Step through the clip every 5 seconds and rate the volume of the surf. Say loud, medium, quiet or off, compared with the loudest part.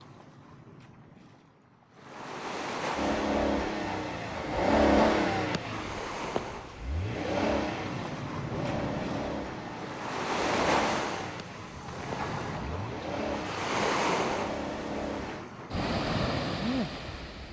medium, medium, loud, loud.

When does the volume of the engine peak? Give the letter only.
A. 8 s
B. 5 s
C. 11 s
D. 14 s
B.